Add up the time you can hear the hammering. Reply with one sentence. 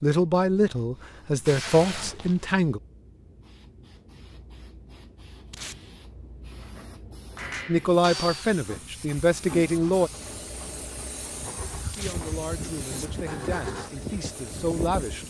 You can't hear the hammering here.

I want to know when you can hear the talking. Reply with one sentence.
The talking can be heard from 0.0 to 2.8 s, from 7.7 to 10.1 s and from 11.8 to 15.2 s.